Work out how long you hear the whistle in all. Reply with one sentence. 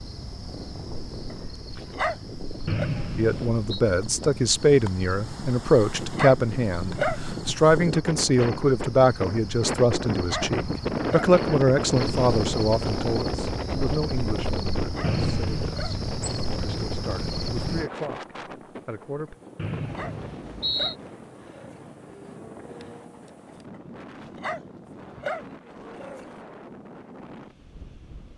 You can hear the whistle for 3 seconds altogether.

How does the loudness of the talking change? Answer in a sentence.
The loudness of the talking goes down.